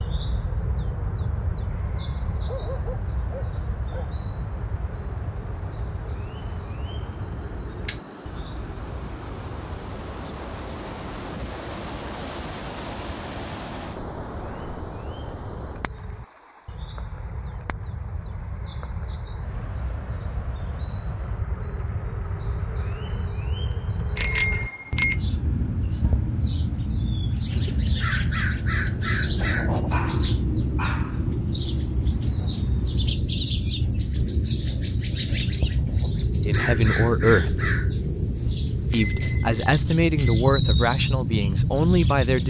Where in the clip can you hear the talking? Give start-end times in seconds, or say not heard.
36.5-37.7, 38.9-42.4.